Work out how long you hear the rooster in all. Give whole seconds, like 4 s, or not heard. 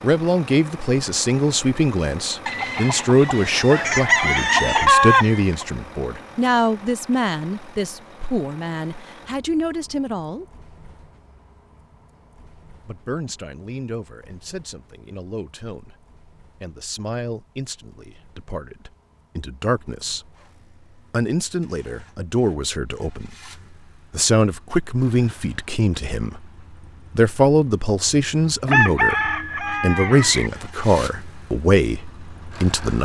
5 s.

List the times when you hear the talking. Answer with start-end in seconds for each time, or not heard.
0.0-10.4, 12.8-20.2, 21.1-23.4, 24.1-26.4, 27.1-32.9.